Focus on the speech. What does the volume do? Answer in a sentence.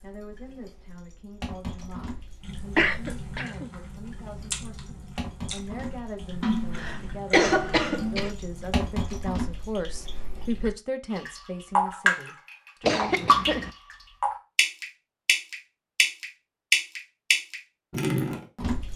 The loudness of the speech goes up.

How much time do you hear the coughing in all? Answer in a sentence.
You can hear the coughing for 4 seconds altogether.